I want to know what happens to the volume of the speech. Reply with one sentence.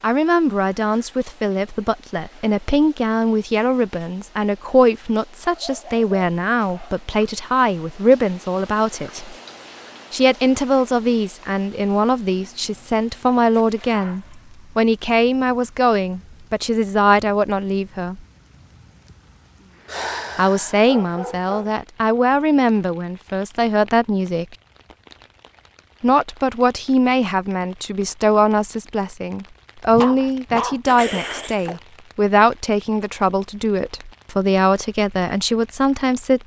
The loudness of the speech stays about the same.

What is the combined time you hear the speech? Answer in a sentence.
You can hear the speech for 32 seconds altogether.